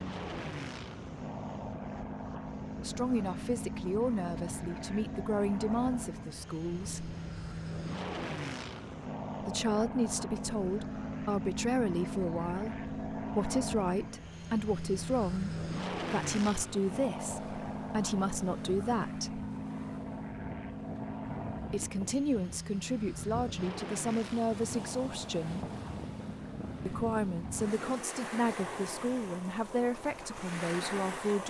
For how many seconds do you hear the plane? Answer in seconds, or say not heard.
28 s.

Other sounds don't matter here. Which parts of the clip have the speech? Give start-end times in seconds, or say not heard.
2.8-7.2, 9.4-19.4, 21.7-25.7, 26.9-31.4.